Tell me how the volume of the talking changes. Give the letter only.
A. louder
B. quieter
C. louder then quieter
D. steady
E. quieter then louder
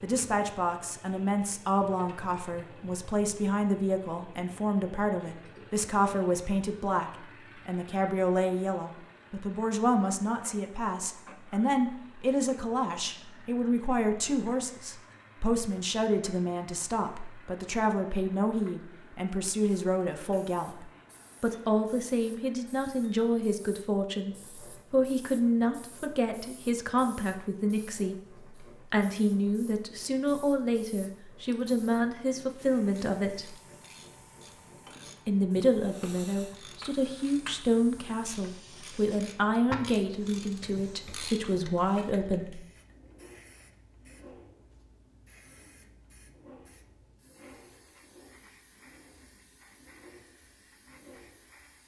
D.